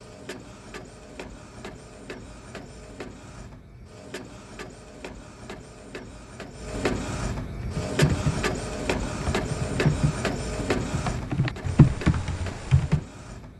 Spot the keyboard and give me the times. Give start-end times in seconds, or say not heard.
7.6-13.0.